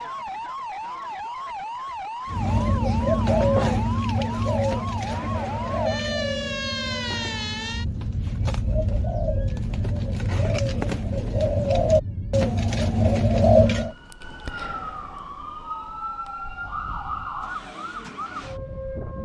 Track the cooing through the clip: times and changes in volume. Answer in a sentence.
The cooing can be heard from 2.3 to 13.9 s, getting quieter then louder.